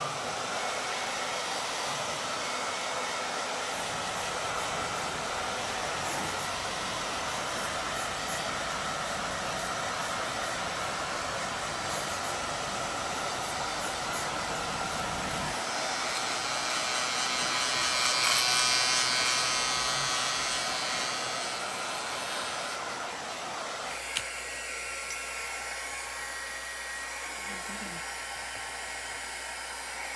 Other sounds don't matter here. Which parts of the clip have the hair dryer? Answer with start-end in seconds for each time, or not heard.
0.0-30.1.